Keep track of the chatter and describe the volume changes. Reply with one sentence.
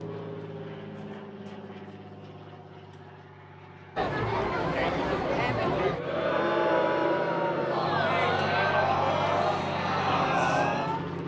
The volume of the chatter stays about the same.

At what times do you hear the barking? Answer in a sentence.
The barking can't be heard in this clip.